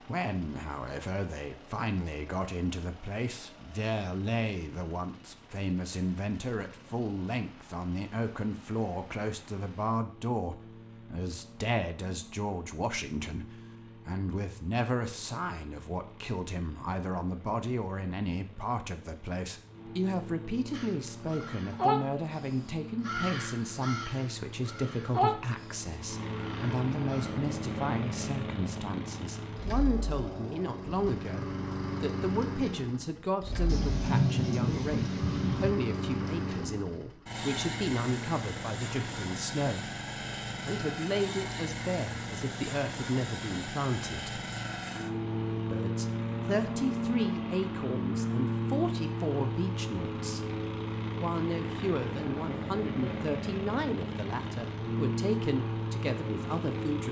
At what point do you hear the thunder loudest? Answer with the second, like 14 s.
34 s.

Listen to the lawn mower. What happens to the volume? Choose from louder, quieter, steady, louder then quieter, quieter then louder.
louder.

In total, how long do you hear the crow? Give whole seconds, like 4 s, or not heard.
7 s.